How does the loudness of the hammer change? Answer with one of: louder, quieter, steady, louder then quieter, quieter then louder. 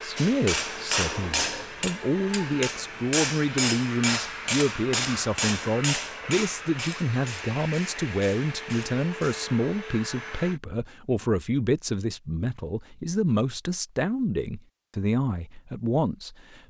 quieter.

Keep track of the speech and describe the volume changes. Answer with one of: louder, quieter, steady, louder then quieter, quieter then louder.
steady.